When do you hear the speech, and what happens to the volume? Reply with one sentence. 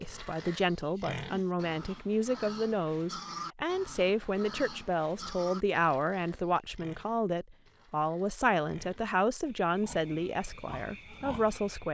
You can hear the speech from 0.0 to 11.8 s, at a steady volume.